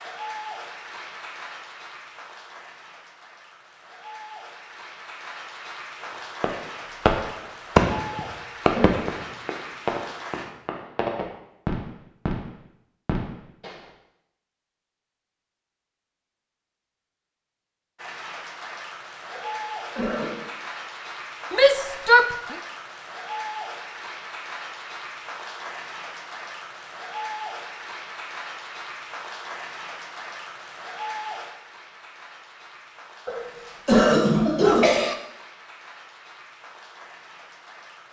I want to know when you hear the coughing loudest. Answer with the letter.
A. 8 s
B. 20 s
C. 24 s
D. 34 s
D.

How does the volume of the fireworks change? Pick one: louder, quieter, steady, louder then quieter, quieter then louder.
quieter.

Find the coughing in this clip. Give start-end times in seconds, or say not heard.
8.1-8.9, 19.4-20.4, 33.2-35.1.